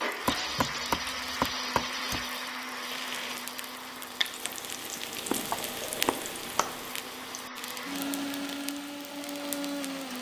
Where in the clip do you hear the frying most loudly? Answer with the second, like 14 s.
6 s.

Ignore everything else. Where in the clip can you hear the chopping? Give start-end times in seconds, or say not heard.
0.2-2.2, 5.2-6.8.